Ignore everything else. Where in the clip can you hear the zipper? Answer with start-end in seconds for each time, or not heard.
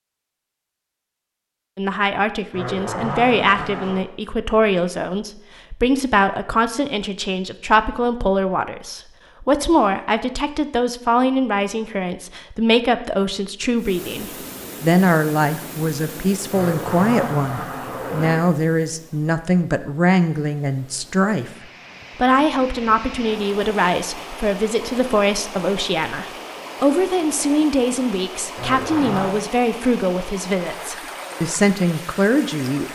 2.5-4.0, 16.5-18.4, 28.6-29.4.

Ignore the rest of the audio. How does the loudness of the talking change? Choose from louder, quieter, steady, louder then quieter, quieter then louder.
steady.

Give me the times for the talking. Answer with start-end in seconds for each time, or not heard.
1.8-21.5, 22.1-32.9.